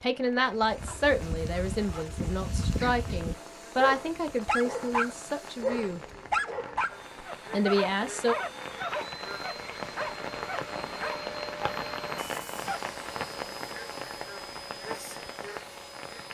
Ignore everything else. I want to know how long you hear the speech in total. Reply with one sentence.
The speech can be heard for 7 seconds in total.